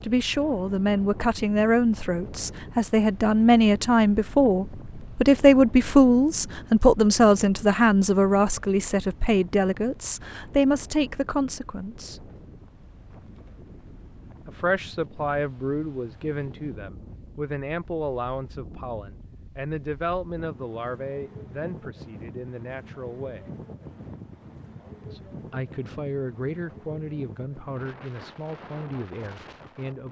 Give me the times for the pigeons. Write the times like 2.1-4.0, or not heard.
not heard.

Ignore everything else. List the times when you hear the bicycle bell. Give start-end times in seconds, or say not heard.
not heard.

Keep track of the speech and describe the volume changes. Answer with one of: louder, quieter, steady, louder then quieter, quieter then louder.
quieter.